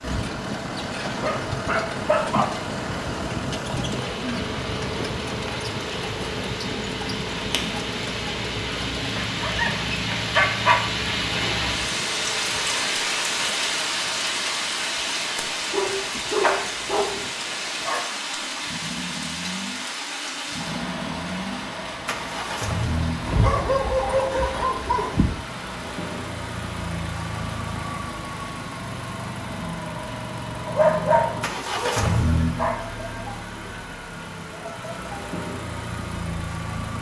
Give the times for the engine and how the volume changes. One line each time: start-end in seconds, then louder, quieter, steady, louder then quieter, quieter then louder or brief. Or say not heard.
0.0-36.9 quieter then louder.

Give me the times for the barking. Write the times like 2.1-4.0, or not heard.
1.1-2.5, 9.2-10.8, 15.7-17.1, 23.2-25.2, 30.6-32.8.